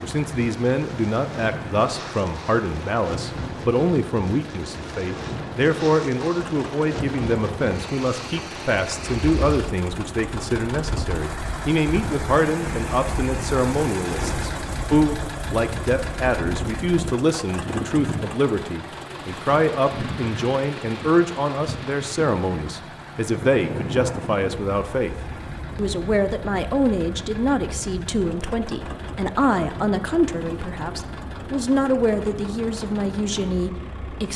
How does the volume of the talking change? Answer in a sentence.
The loudness of the talking stays about the same.